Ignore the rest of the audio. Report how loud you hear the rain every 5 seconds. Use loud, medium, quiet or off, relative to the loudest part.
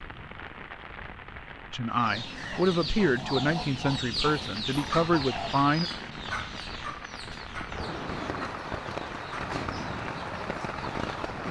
medium, loud, loud.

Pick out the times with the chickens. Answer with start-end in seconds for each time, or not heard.
1.9-11.2.